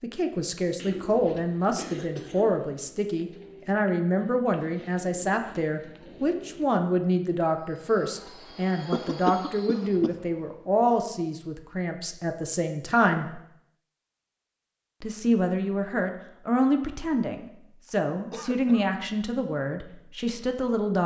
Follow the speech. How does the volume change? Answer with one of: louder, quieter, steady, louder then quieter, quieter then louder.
steady.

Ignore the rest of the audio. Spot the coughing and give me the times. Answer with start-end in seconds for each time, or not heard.
0.8-2.6, 8.9-10.1, 17.9-18.9.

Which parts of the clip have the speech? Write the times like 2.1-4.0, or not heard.
0.0-13.4, 15.0-21.0.